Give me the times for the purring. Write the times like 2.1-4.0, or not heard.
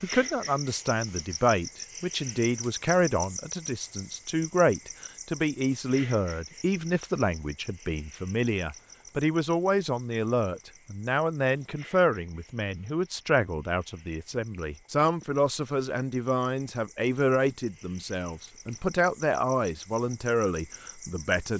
not heard.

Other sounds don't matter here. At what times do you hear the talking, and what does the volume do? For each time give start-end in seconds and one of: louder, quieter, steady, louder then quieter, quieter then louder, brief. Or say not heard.
0.0-21.5 steady.